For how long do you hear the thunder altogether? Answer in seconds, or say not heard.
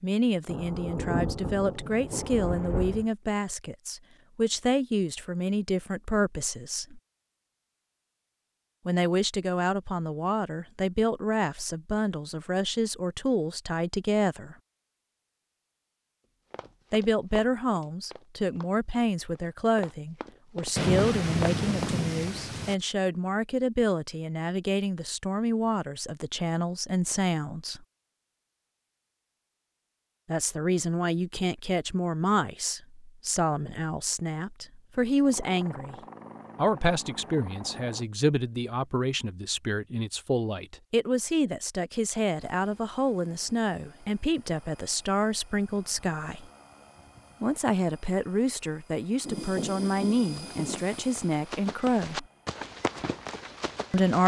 6 s.